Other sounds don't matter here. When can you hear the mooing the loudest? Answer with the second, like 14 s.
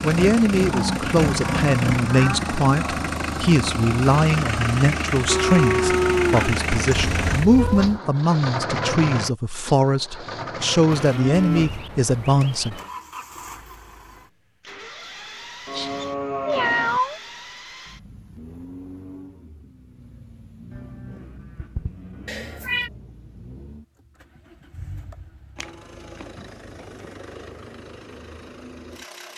6 s.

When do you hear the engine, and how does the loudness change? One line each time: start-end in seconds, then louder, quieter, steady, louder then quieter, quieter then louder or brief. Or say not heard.
0.0-29.3 quieter.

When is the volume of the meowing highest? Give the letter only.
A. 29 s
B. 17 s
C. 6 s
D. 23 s
B.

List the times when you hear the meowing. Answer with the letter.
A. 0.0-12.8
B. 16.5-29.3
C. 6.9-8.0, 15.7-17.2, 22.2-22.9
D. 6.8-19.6
C.